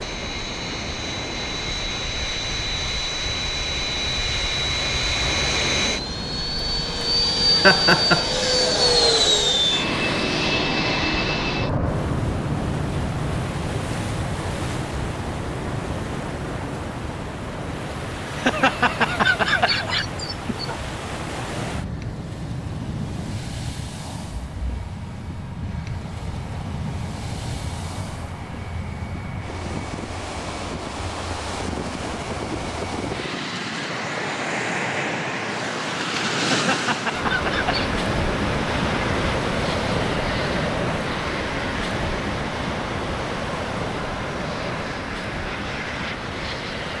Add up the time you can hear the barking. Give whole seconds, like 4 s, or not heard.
not heard.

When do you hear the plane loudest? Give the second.
9 s.